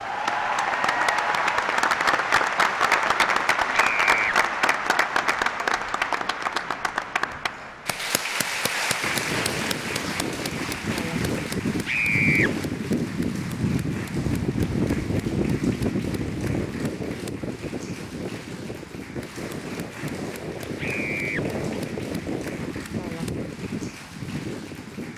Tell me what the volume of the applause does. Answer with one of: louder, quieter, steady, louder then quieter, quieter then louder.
quieter.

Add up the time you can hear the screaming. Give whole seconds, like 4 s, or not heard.
2 s.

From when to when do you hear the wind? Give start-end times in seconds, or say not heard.
9.0-25.1.